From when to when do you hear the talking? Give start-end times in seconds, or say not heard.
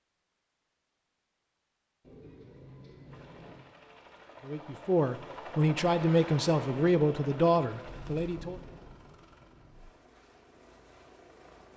4.5-8.6.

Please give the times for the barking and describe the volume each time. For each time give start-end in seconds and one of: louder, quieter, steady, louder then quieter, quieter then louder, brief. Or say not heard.
not heard.